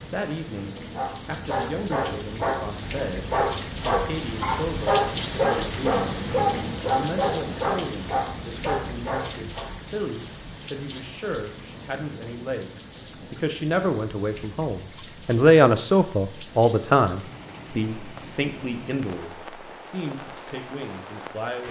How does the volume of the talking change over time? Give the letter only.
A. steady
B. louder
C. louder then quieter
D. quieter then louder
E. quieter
C.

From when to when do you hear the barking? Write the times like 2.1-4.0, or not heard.
0.9-9.7.